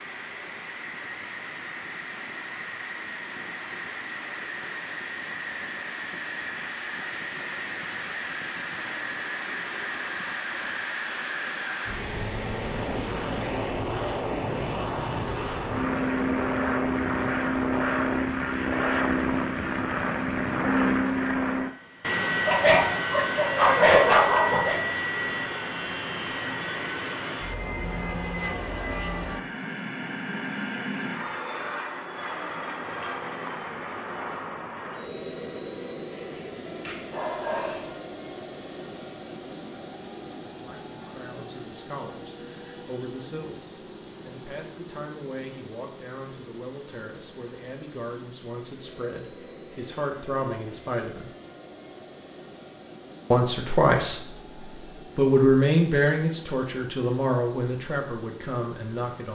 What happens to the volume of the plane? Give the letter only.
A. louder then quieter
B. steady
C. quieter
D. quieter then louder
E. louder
A.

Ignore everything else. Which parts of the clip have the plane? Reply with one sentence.
You can hear the plane from 0.0 to 59.3 s.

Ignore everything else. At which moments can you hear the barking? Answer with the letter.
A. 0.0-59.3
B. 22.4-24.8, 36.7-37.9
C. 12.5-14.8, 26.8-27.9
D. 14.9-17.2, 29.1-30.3
B.